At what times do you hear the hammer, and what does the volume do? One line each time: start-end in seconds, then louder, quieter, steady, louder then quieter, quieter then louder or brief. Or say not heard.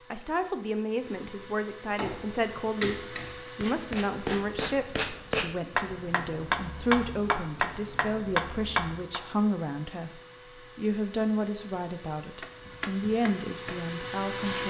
1.9-9.2 louder
12.4-14.6 brief.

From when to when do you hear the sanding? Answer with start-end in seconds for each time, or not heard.
not heard.